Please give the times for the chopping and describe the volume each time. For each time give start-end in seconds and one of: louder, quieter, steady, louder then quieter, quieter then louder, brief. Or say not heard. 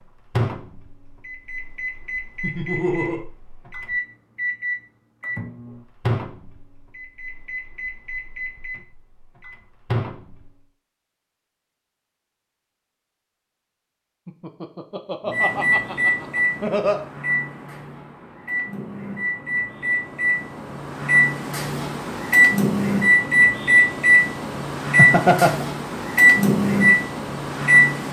not heard.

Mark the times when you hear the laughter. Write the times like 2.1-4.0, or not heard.
2.4-3.2, 14.2-17.1, 24.9-25.6.